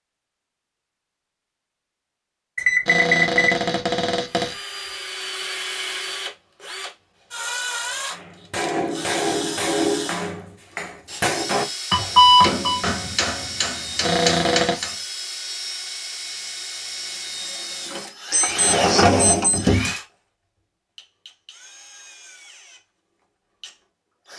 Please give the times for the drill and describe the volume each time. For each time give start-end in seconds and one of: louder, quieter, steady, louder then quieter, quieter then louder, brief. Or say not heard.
4.2-24.3 quieter.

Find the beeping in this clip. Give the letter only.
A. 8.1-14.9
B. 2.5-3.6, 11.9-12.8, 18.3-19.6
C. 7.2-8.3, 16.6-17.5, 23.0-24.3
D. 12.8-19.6
B.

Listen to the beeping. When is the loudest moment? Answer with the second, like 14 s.
12 s.